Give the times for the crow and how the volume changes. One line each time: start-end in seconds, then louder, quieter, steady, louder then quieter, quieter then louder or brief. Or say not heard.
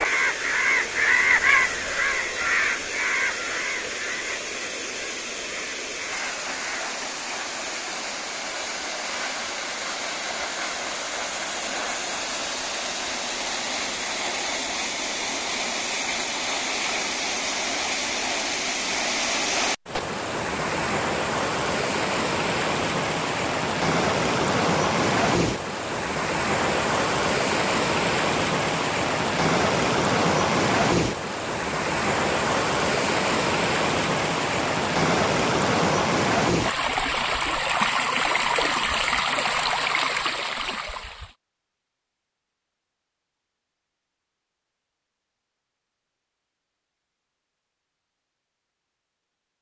0.0-6.9 quieter.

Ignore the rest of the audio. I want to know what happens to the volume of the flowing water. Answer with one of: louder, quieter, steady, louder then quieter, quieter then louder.
louder.